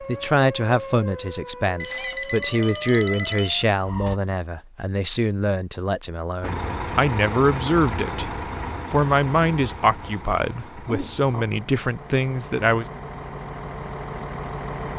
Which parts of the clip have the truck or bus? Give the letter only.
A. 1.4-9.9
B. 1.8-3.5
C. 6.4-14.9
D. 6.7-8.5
C.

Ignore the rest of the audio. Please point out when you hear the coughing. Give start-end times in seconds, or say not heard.
not heard.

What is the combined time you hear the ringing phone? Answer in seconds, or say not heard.
2 s.